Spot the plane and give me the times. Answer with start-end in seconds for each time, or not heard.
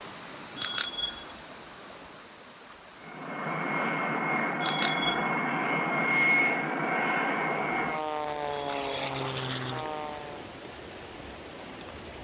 3.0-10.4.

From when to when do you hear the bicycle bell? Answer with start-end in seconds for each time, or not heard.
0.6-1.2, 4.6-5.2, 8.4-8.9.